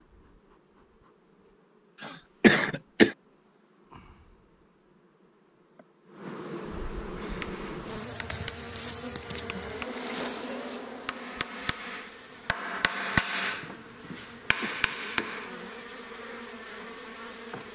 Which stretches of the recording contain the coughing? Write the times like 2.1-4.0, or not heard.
2.0-3.1, 14.2-15.8.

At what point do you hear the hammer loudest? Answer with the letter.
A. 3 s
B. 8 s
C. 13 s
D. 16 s
C.